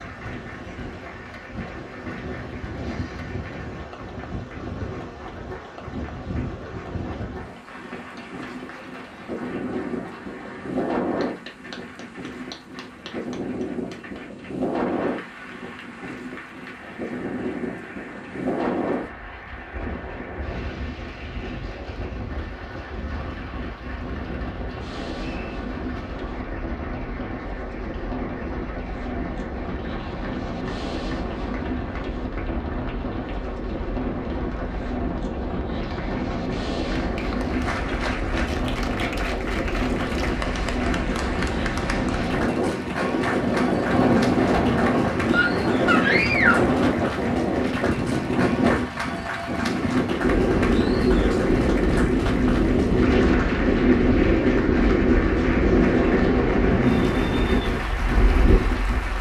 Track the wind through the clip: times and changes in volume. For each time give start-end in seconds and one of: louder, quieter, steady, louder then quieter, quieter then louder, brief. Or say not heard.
0.0-59.1 louder.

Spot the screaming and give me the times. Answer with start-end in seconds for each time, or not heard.
45.3-46.6.